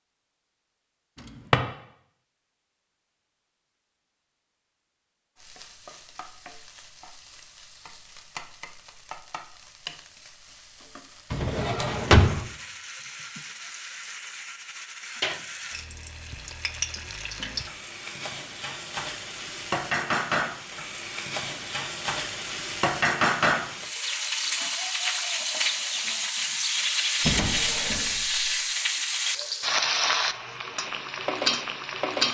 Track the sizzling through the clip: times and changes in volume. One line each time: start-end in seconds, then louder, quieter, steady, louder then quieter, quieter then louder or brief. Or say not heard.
5.3-32.2 louder.